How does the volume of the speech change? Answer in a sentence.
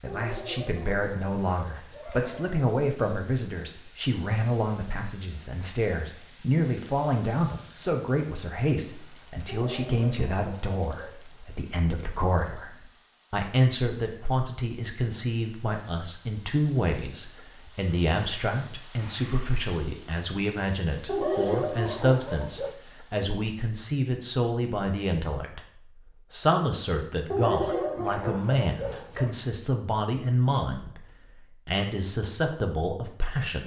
The loudness of the speech stays about the same.